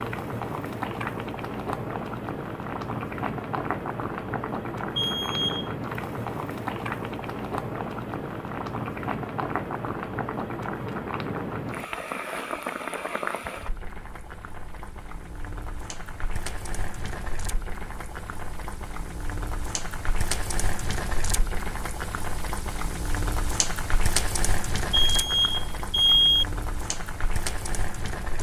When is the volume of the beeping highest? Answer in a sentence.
The loudest moment of the beeping is at 26 seconds.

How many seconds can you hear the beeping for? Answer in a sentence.
You can hear the beeping for 2 seconds altogether.